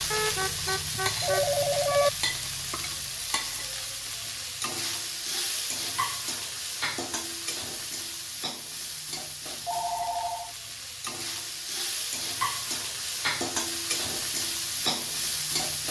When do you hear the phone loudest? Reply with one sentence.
The loudest moment of the phone is at 2 seconds.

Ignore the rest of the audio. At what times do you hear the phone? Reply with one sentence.
The phone can be heard from 0.1 to 2.1 s and from 9.7 to 10.6 s.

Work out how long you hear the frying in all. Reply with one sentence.
The frying can be heard for 16 seconds in total.